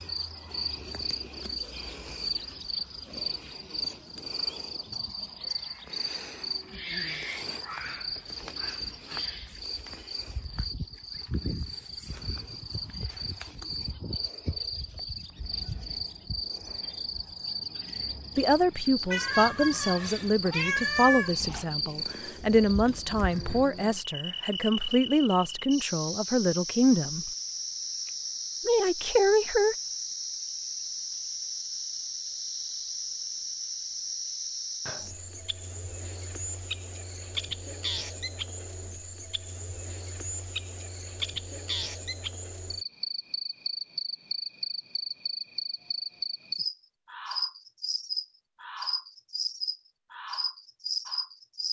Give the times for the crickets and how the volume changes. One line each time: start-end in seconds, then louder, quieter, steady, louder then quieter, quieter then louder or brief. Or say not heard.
0.0-51.6 steady.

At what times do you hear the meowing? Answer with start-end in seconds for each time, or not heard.
19.1-21.6.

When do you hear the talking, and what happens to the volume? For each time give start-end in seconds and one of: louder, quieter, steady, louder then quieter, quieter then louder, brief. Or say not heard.
18.4-27.3 steady
28.6-29.8 brief.